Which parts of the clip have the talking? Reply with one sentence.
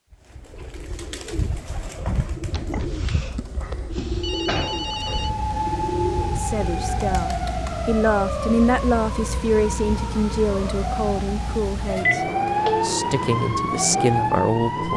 You can hear the talking from 6.3 to 14.9 s.